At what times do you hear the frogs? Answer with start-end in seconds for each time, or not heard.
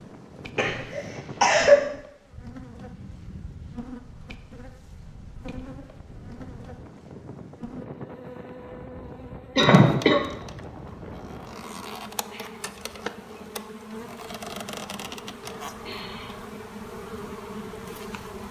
not heard.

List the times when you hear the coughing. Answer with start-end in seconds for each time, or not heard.
0.6-1.8, 9.6-10.2.